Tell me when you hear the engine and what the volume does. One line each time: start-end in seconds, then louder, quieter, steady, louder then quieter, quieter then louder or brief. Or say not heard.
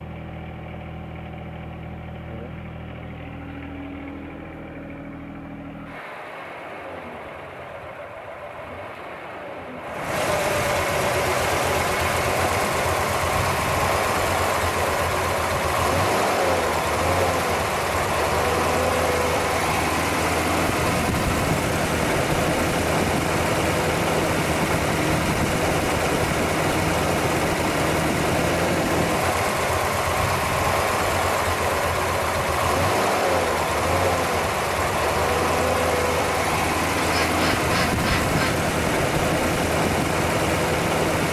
0.0-41.2 louder.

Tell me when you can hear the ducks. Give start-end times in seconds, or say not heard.
37.0-38.6.